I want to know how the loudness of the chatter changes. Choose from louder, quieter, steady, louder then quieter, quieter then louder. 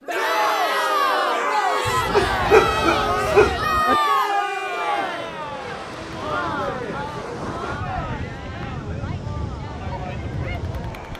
quieter.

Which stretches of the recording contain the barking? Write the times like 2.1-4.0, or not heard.
1.9-4.0.